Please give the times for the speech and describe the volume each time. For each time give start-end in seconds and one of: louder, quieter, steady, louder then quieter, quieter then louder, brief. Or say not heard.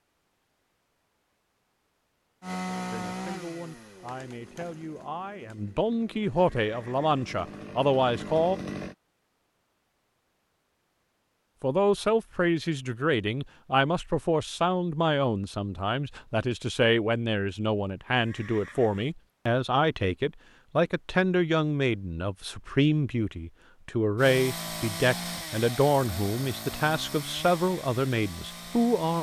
2.9-8.6 louder
11.6-29.1 steady.